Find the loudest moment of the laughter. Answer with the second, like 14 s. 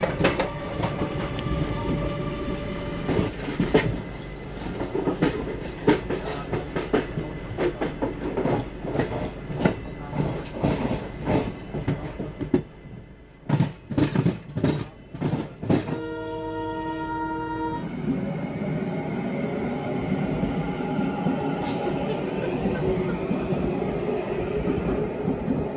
22 s.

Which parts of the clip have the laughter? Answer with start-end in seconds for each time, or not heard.
21.6-23.4.